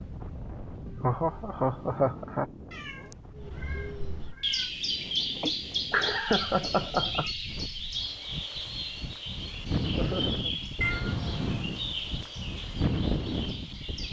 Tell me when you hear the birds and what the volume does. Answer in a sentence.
You can hear the birds from 3.4 to 14.0 s, getting quieter.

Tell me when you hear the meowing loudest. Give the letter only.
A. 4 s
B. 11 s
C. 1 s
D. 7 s
B.